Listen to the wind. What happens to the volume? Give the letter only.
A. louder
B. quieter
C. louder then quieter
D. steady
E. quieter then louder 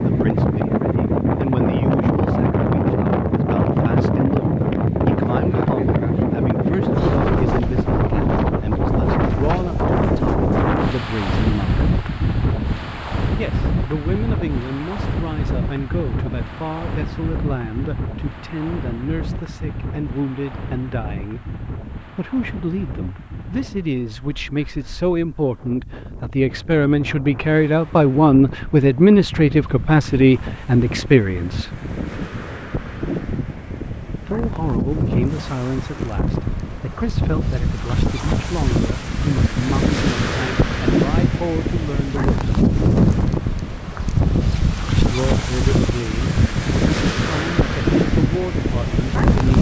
E.